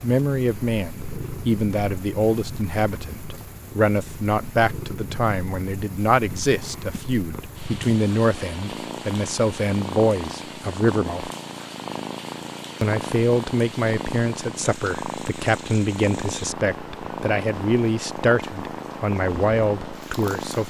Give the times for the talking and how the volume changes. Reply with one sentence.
You can hear the talking from 0.0 to 11.3 s, at a steady volume; and from 12.8 to 20.6 s, at a steady volume.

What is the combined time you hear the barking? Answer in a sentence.
The barking can't be heard in this clip.